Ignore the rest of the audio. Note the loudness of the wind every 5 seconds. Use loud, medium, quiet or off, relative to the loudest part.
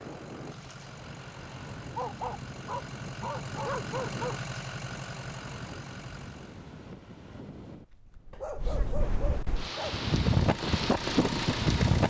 quiet, quiet, loud.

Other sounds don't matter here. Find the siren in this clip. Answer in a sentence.
You can't hear the siren here.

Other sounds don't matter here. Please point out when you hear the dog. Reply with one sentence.
The dog can be heard from 1.9 to 4.3 s and from 8.3 to 10.0 s.